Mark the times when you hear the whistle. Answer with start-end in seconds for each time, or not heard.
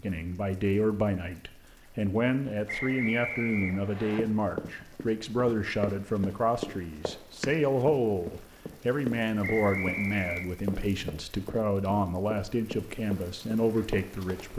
2.6-4.2, 9.4-10.4.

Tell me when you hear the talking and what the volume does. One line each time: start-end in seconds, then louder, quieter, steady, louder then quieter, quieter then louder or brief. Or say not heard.
0.0-14.5 steady.